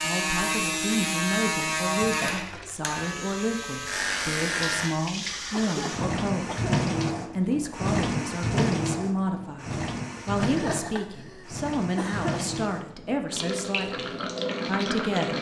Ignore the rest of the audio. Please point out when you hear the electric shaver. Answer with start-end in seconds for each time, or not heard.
0.0-5.0.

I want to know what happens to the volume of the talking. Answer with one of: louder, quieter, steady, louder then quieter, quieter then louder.
steady.